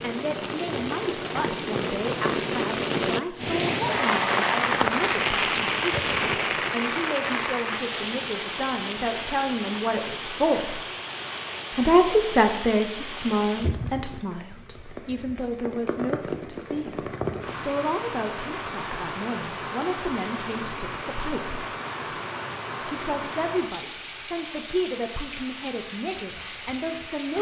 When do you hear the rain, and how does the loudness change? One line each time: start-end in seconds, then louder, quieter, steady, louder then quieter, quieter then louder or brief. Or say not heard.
0.0-27.3 quieter.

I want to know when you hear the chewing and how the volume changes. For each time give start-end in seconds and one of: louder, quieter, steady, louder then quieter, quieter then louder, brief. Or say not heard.
not heard.